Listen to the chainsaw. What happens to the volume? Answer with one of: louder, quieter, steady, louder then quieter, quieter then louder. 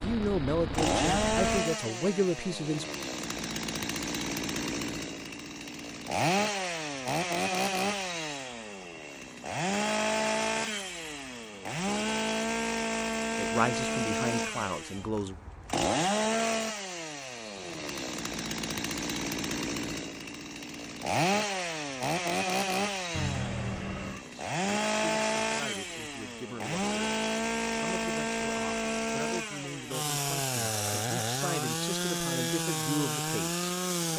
steady.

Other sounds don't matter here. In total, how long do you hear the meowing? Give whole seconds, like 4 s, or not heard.
3 s.